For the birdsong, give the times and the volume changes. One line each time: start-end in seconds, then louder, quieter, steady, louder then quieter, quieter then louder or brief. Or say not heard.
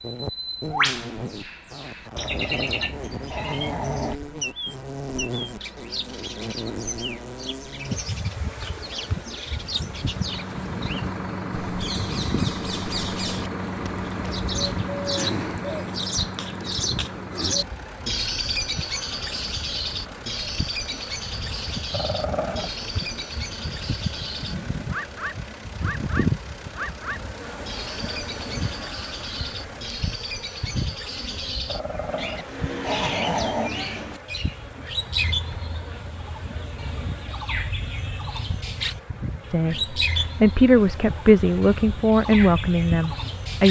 0.1-43.6 steady.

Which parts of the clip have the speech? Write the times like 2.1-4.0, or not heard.
39.5-43.6.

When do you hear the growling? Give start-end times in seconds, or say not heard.
2.1-4.2, 21.9-22.7, 31.6-33.7.